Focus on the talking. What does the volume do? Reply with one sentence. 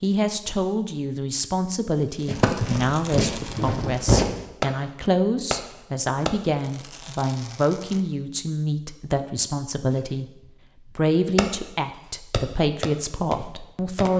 The volume of the talking stays about the same.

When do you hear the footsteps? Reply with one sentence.
You can hear the footsteps from 2.2 to 4.3 s.